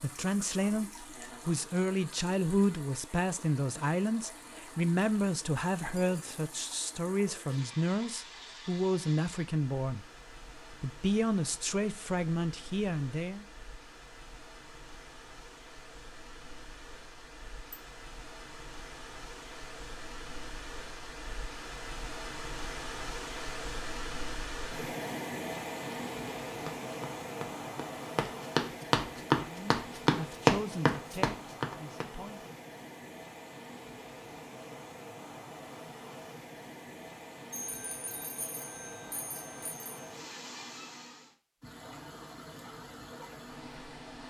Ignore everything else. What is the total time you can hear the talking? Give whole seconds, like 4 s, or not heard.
16 s.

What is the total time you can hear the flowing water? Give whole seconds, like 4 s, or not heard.
44 s.